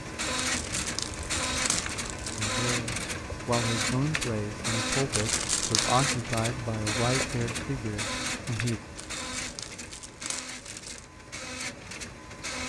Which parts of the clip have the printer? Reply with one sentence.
The printer can be heard from 0.0 to 12.6 s.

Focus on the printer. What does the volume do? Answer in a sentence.
The loudness of the printer goes down.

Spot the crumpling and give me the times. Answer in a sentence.
The crumpling can be heard from 0.3 to 2.5 s, from 5.1 to 6.0 s and from 8.9 to 11.1 s.